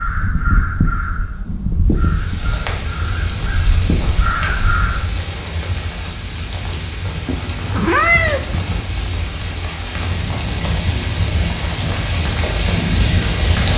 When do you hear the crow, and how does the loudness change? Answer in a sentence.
The crow can be heard from 0.0 to 5.0 s, getting quieter then louder.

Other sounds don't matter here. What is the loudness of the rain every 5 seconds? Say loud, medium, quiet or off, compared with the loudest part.
medium, medium, loud.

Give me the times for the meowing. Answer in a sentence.
The meowing can be heard from 7.2 to 8.8 s.